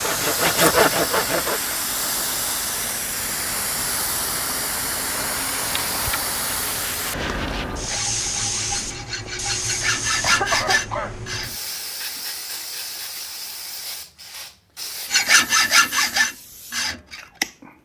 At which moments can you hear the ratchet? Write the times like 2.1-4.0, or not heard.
not heard.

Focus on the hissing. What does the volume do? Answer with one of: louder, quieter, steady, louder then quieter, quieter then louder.
quieter.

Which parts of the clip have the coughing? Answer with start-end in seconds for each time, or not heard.
10.2-11.3.